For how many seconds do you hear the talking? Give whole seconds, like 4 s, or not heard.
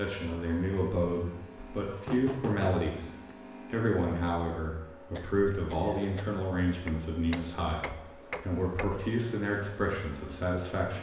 11 s.